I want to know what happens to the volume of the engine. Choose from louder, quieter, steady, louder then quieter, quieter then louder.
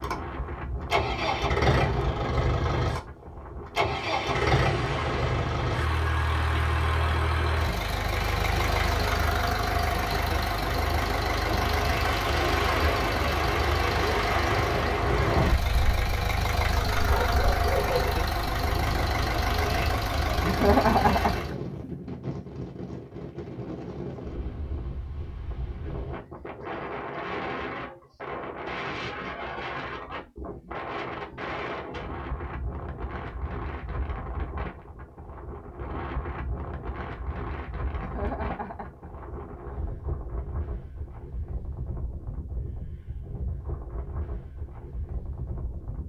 steady.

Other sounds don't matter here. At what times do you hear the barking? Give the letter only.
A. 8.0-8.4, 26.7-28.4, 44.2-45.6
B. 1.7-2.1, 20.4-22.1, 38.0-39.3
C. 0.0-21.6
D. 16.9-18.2
D.